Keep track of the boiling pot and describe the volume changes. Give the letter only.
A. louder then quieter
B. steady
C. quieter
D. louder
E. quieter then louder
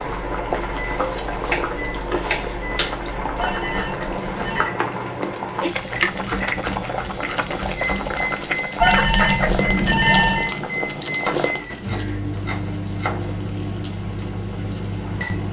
C.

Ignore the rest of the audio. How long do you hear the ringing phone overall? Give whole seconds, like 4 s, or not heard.
3 s.